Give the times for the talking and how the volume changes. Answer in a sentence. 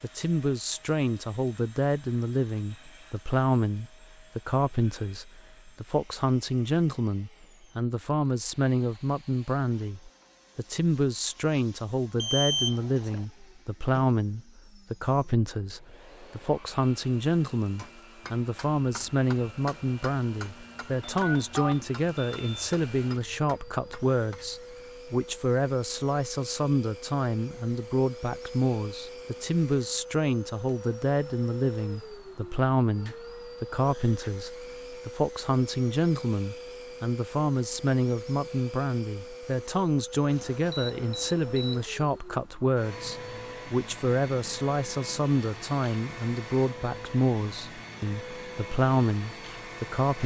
The talking can be heard from 0.0 to 50.2 s, at a steady volume.